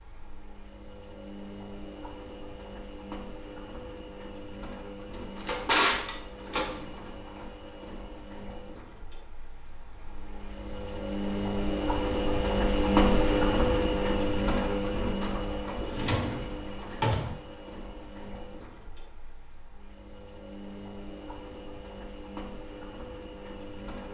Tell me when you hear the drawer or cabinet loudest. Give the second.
6 s.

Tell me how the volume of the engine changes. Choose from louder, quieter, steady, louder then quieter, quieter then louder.
louder then quieter.